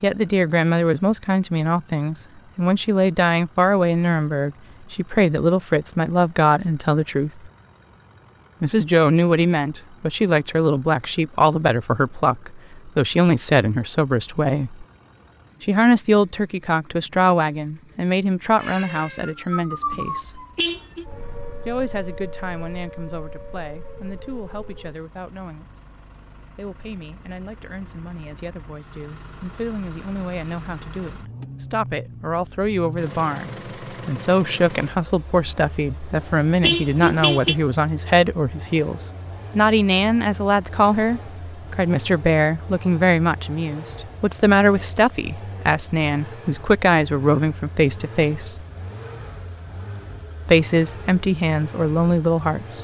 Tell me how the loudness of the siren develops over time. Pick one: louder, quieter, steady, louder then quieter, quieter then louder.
quieter.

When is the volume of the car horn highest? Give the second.
37 s.